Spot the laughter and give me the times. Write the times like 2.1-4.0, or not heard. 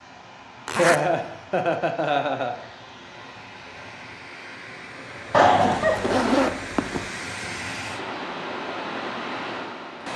0.8-2.5, 5.3-6.2.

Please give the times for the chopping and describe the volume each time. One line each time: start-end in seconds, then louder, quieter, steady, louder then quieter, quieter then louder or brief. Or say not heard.
not heard.